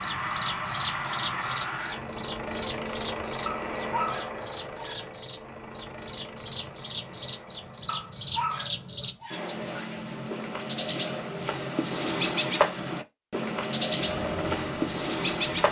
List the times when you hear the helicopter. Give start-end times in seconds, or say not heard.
0.0-9.3, 13.9-15.6.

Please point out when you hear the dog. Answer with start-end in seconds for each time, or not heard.
3.5-5.0, 7.8-9.5.